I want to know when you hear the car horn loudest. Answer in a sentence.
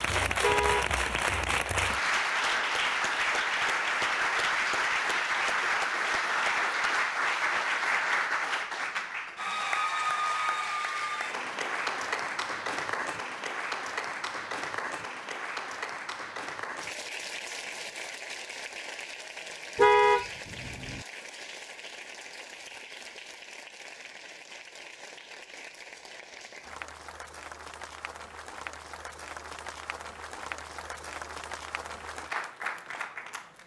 The loudest moment of the car horn is at 20 seconds.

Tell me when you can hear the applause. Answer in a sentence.
You can hear the applause from 0.0 to 33.6 s.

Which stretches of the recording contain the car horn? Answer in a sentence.
The car horn can be heard from 0.4 to 1.6 s and from 19.8 to 21.0 s.